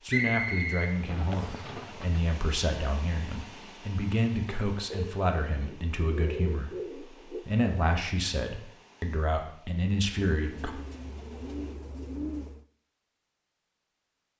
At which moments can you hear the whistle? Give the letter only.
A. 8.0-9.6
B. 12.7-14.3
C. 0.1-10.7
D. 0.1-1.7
D.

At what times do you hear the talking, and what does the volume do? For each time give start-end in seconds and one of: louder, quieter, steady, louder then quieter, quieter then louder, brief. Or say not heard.
0.1-10.7 steady.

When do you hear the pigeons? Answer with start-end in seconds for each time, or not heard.
0.8-2.2, 4.9-7.5, 10.3-12.7.